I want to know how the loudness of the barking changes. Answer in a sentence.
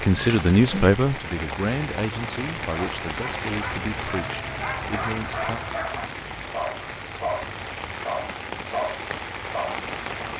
The loudness of the barking goes up.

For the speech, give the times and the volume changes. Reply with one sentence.
You can hear the speech from 0.0 to 5.6 s, getting quieter.